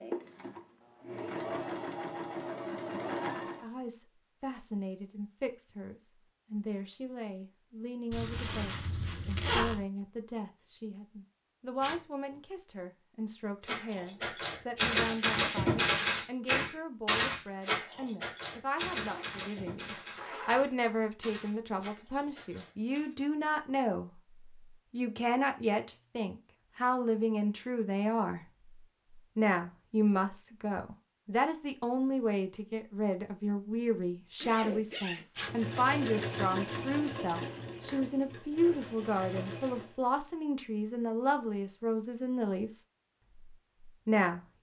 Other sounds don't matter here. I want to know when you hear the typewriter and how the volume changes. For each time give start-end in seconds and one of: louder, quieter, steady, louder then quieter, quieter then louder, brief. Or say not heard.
13.7-23.1 quieter.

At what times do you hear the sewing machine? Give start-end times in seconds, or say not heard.
0.0-3.6, 35.4-40.0.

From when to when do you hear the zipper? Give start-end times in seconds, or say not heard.
8.1-9.8, 18.9-20.6, 34.4-35.2.